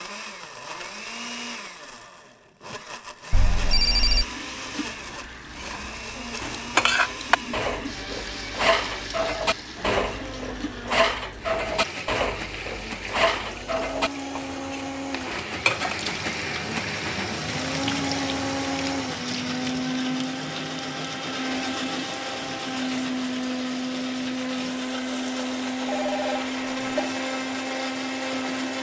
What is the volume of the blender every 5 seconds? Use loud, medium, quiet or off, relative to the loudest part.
medium, medium, medium, loud, loud, loud.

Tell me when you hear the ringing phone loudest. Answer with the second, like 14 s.
4 s.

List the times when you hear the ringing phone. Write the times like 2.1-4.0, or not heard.
3.3-4.2, 25.9-27.1.